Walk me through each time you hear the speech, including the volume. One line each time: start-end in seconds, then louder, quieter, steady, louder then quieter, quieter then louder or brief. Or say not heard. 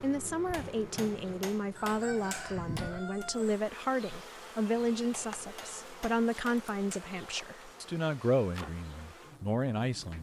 0.0-10.1 steady.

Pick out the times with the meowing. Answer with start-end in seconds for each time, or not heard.
not heard.